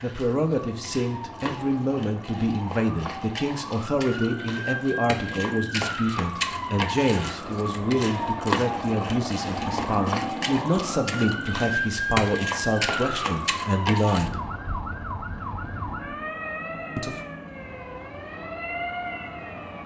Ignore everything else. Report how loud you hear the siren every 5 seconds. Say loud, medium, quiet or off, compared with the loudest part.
medium, loud, loud, medium.